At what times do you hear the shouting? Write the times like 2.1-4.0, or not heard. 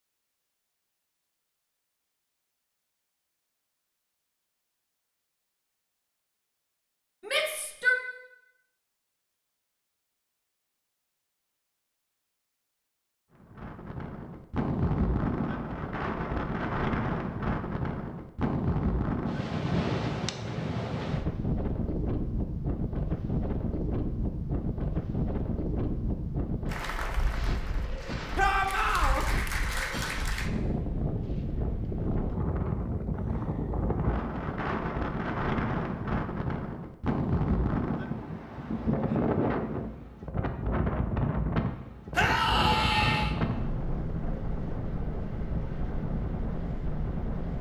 7.2-8.0, 28.4-29.2, 42.1-43.4.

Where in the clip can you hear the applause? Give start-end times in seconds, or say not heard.
26.6-30.5.